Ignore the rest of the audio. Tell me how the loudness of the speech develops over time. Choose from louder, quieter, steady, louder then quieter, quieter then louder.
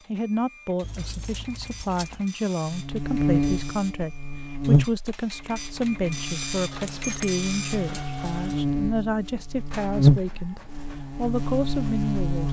steady.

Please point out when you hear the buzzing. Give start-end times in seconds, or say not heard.
2.7-12.4.